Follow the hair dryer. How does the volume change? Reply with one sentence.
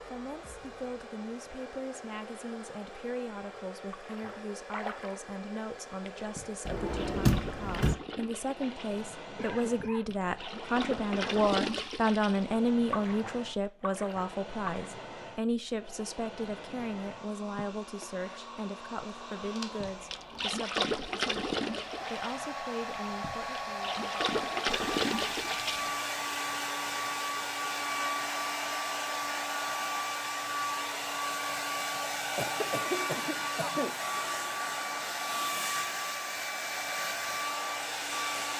The volume of the hair dryer goes up.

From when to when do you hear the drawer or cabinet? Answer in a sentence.
The drawer or cabinet can be heard from 6.7 to 8.0 s.